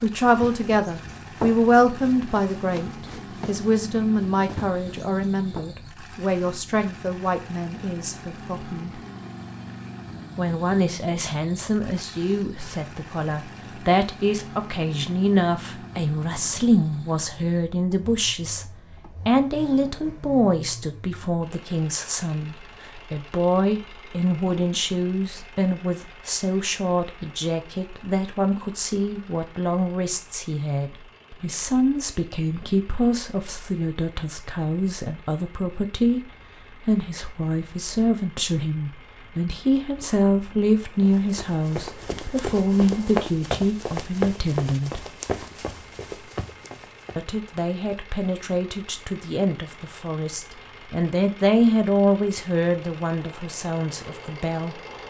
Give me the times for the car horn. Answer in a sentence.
The car horn can't be heard in this clip.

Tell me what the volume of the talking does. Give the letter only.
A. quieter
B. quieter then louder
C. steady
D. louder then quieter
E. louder
C.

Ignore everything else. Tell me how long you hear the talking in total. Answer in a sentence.
The talking can be heard for 51 seconds in total.